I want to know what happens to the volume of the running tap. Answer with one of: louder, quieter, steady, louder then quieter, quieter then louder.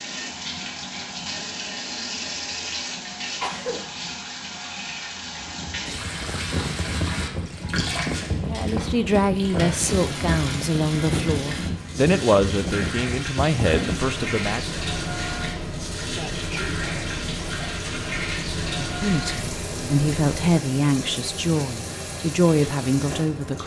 steady.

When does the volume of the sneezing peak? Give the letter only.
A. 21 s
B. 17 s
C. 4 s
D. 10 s
C.